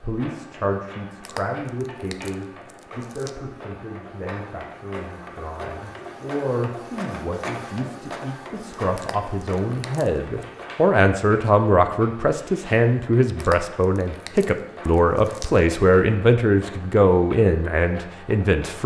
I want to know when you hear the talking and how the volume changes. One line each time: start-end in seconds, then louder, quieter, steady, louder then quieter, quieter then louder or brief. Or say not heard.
0.0-18.8 louder.